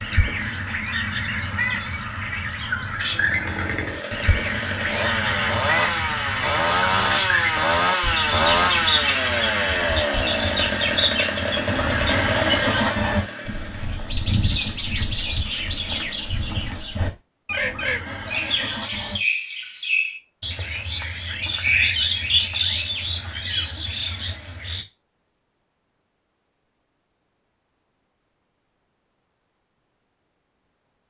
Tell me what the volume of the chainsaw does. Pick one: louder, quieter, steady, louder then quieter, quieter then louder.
louder then quieter.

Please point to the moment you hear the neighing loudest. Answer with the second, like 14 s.
13 s.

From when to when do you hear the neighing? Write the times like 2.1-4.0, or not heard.
11.7-13.2, 17.6-19.2.